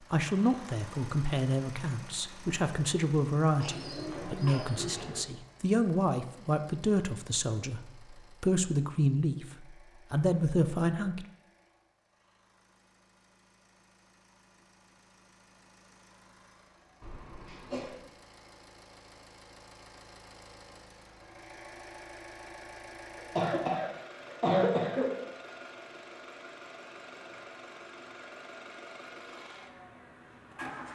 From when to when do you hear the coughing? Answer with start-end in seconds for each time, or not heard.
3.5-5.1, 17.0-18.1, 23.1-25.1.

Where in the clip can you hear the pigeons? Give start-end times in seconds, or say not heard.
3.6-5.3.